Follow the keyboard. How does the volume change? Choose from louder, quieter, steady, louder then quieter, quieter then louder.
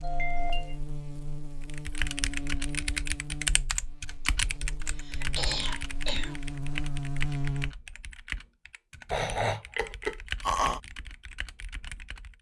quieter.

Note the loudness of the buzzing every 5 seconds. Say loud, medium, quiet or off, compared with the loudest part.
medium, loud, off.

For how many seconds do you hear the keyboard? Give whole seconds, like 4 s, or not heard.
11 s.